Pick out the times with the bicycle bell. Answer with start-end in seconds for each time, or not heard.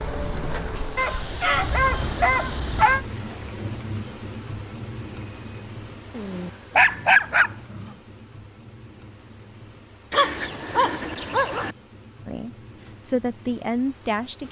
5.0-5.7.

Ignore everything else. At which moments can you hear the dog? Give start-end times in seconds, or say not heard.
0.9-3.0, 6.2-7.9, 10.1-11.8.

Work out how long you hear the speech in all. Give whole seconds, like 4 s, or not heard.
2 s.